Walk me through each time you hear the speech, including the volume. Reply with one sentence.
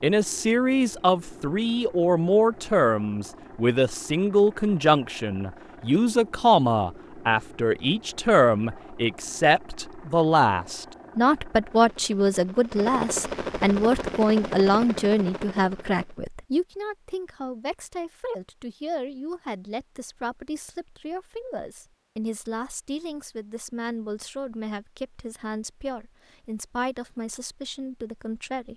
You can hear the speech from 0.0 to 28.7 s, getting quieter.